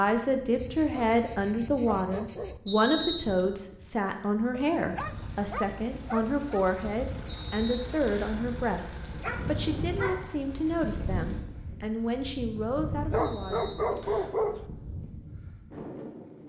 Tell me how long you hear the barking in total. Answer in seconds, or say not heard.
7 s.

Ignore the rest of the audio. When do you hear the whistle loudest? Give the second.
3 s.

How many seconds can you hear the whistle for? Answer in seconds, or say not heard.
3 s.